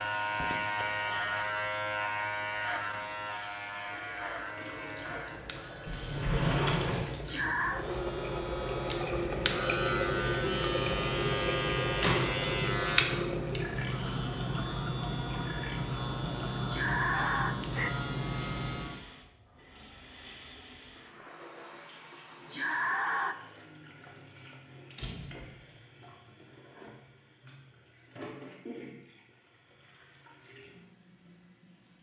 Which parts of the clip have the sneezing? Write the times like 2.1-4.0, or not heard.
7.2-7.8, 16.6-17.9, 22.5-23.4.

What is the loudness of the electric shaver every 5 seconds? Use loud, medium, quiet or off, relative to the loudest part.
loud, medium, loud, loud, off, off, off.